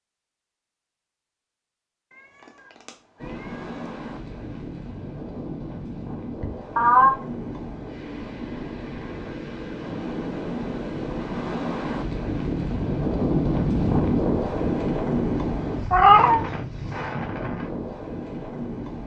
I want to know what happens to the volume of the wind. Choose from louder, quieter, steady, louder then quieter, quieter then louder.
louder then quieter.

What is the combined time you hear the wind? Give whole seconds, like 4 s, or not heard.
16 s.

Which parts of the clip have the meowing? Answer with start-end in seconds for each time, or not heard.
6.4-7.1, 15.9-16.4.